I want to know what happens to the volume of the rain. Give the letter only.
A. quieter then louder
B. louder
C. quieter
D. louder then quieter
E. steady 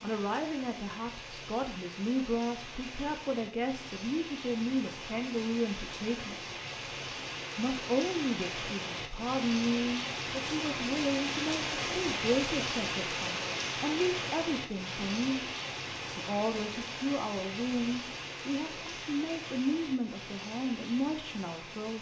D.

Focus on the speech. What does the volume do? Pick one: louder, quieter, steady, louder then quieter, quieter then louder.
steady.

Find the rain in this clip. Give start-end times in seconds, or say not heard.
0.0-21.9.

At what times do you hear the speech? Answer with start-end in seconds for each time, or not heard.
0.0-6.5, 7.5-15.4, 16.1-21.9.